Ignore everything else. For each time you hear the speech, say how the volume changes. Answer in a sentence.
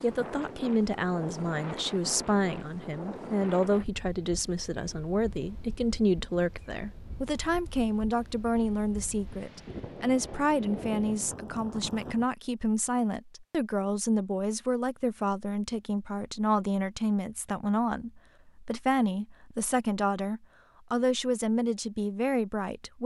The speech can be heard from 0.0 to 23.0 s, at a steady volume.